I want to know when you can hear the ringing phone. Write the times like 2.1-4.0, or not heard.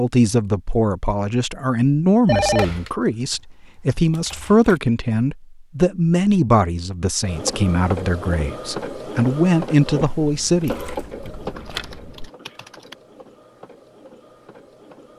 2.2-2.9, 10.0-12.3.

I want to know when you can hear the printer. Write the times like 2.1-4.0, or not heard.
7.2-15.1.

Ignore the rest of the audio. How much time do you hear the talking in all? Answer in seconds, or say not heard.
11 s.